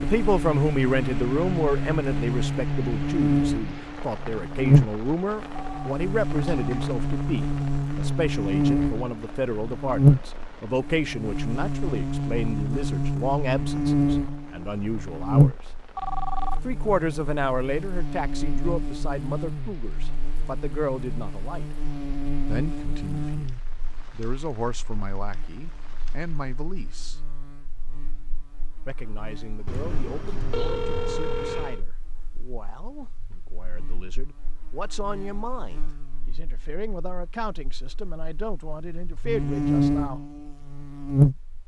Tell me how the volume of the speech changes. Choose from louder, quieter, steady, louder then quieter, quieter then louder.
quieter.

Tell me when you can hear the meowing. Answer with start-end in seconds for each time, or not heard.
not heard.